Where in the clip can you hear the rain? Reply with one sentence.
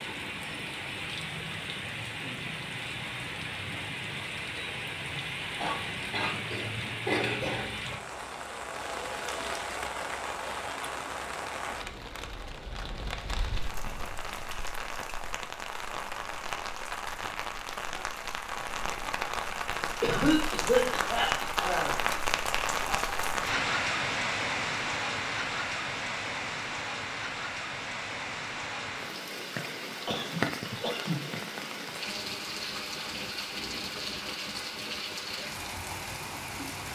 The rain can be heard from 0.0 to 36.9 s.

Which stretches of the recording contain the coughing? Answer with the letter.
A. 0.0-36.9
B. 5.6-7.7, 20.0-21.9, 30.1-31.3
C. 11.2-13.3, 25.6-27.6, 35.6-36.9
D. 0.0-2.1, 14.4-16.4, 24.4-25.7
B.